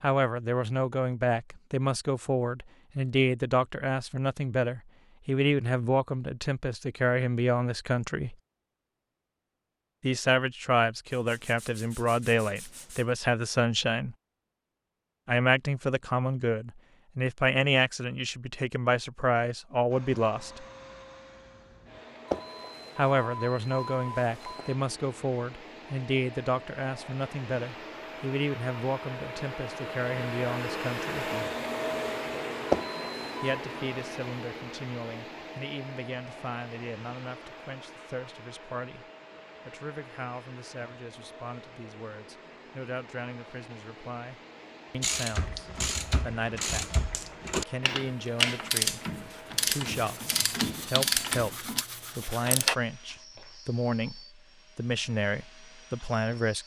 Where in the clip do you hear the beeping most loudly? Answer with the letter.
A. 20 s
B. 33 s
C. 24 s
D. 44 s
B.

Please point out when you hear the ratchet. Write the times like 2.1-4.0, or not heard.
45.0-52.8.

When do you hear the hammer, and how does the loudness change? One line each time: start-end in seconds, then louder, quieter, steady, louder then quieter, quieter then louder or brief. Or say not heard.
not heard.